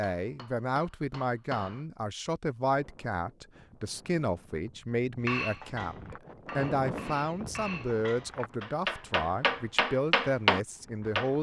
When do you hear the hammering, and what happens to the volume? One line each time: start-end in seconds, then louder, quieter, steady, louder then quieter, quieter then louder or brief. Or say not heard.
0.0-1.8 brief
5.2-11.3 louder.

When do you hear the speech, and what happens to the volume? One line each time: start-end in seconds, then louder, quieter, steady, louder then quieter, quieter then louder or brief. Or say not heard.
0.0-11.3 steady.